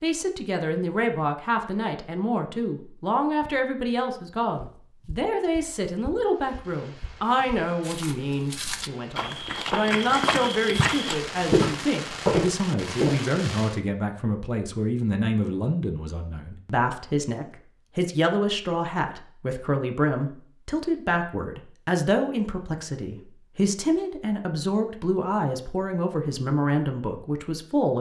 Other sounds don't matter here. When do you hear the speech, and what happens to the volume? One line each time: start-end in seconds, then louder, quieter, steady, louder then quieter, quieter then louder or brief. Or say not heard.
0.0-27.9 steady.